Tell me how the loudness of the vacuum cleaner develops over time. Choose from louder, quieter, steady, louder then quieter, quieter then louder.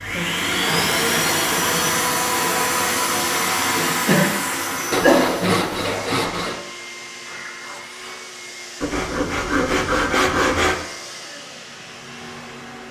quieter.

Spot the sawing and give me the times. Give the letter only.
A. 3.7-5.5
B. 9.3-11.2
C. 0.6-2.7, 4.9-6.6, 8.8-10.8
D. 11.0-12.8
C.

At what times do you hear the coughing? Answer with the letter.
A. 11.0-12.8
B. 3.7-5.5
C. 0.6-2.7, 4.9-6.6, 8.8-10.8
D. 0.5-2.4
B.